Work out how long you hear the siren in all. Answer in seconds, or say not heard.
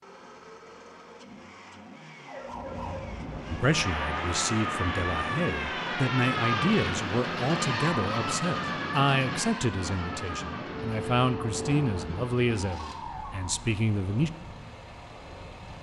11 s.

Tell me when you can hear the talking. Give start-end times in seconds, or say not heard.
3.5-14.3.